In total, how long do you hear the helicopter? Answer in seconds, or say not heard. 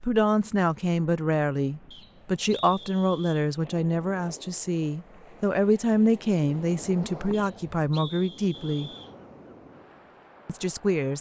not heard.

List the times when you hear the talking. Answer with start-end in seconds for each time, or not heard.
0.0-8.9, 10.4-11.1.